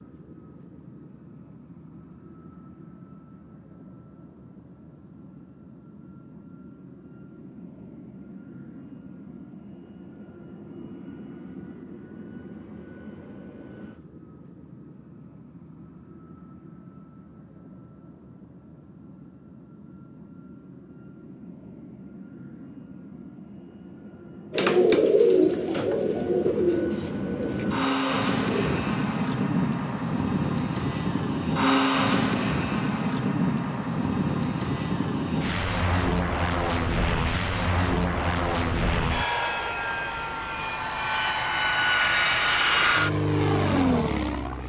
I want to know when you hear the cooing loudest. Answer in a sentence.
The volume of the cooing peaks at 25 seconds.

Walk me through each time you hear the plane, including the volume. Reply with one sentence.
You can hear the plane from 0.0 to 44.6 s, getting louder.